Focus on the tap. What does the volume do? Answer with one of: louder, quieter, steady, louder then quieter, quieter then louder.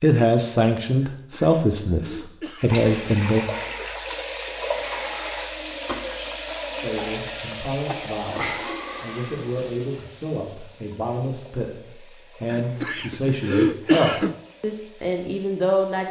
quieter.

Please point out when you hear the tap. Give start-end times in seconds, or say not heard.
2.6-16.0.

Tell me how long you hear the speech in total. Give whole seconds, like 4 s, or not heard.
13 s.